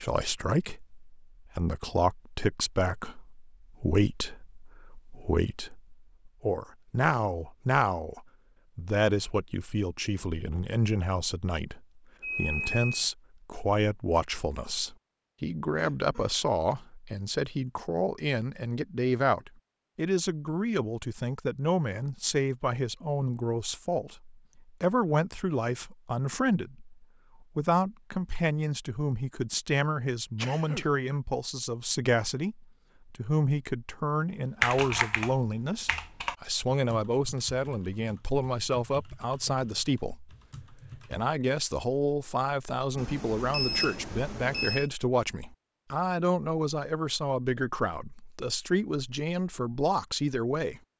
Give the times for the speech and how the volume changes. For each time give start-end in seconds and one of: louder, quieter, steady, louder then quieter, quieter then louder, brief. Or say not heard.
0.0-50.8 steady.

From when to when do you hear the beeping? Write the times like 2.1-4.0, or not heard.
12.2-13.1, 43.0-44.9.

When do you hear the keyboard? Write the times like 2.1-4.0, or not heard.
34.6-41.2.